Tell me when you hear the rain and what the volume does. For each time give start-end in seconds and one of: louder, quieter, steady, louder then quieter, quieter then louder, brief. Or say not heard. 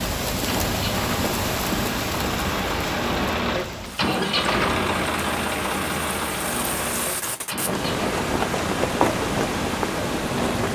0.0-10.7 quieter then louder.